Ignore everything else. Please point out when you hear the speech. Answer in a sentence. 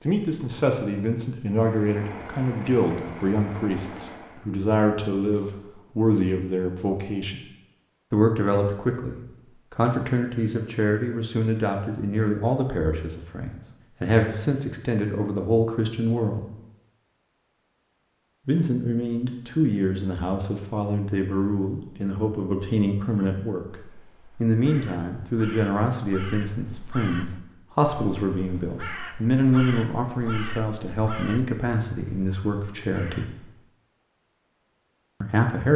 You can hear the speech from 0.1 to 7.4 s, from 8.1 to 16.4 s, from 18.4 to 23.6 s, from 24.4 to 33.2 s and from 35.2 to 35.7 s.